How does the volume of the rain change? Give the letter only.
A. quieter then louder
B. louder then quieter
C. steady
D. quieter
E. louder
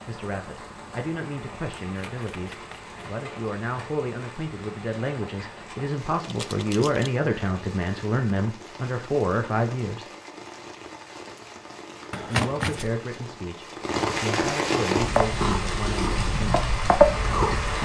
E.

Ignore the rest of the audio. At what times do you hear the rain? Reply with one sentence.
The rain can be heard from 0.0 to 17.8 s.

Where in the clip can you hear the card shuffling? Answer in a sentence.
The card shuffling can be heard from 1.9 to 3.0 s, from 6.2 to 7.1 s and from 12.1 to 12.9 s.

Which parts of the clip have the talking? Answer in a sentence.
You can hear the talking from 0.1 to 10.1 s and from 12.2 to 16.6 s.